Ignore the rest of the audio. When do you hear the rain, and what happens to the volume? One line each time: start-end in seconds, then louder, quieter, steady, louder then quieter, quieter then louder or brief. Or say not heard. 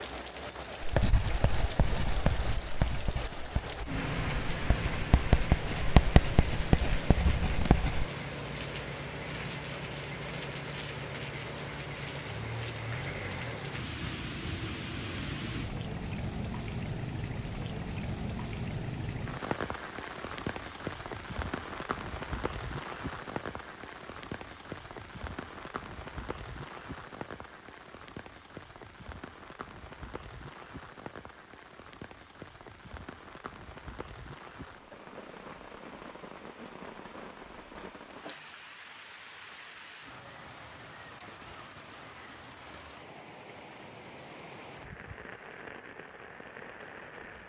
0.0-47.4 quieter.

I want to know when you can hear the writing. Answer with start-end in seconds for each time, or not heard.
0.8-8.1.